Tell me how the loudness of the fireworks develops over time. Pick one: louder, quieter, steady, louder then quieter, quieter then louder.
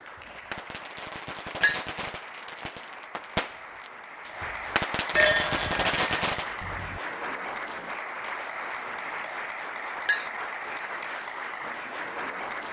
louder.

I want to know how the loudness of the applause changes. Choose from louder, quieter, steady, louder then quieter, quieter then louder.
louder.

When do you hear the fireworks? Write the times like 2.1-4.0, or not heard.
0.0-6.7.